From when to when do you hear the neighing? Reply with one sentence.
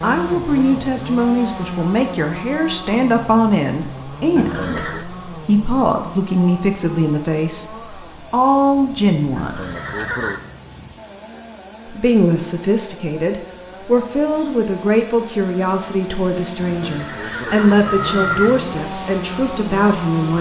The neighing can be heard from 4.3 to 5.0 s, from 9.3 to 10.4 s and from 16.6 to 18.6 s.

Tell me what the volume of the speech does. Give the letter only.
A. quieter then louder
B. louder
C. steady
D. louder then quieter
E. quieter
C.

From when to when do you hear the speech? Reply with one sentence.
You can hear the speech from 0.0 to 9.6 s and from 11.8 to 20.3 s.